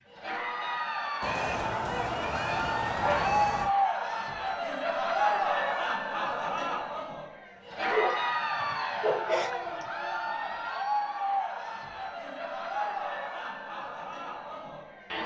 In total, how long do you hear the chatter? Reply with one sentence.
You can hear the chatter for 15 seconds altogether.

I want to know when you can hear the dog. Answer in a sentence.
The dog can be heard from 1.2 to 3.7 s and from 7.9 to 9.8 s.